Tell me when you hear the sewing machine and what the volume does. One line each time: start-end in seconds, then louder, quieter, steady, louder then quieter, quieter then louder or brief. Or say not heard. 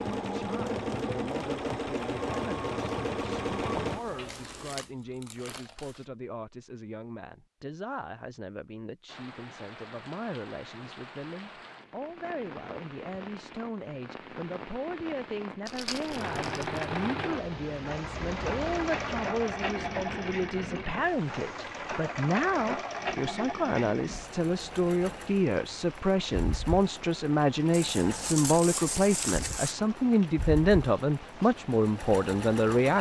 0.0-4.8 steady
16.1-32.9 quieter.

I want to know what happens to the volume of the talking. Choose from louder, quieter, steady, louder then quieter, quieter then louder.
louder.